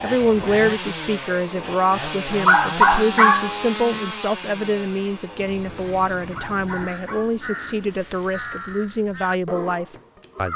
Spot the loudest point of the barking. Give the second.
3 s.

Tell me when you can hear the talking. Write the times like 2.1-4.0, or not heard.
0.0-10.5.